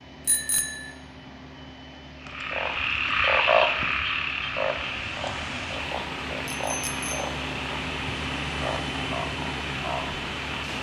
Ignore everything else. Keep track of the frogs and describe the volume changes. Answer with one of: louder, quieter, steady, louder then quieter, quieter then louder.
quieter.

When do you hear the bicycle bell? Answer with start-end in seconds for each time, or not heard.
0.2-0.9, 6.5-7.3.